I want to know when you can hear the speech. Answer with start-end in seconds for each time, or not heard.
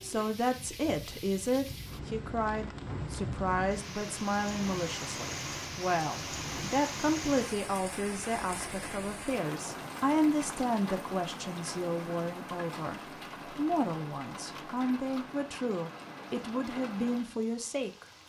0.0-18.1.